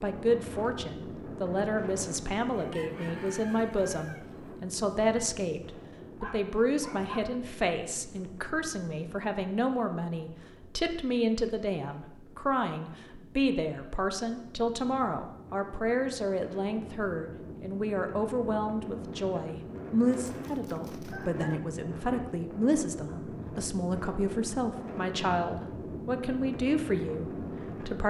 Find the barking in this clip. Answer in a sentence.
You can hear the barking from 6.2 to 7.2 s.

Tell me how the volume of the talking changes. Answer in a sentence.
The volume of the talking stays about the same.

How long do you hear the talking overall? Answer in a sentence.
The talking can be heard for 28 seconds in total.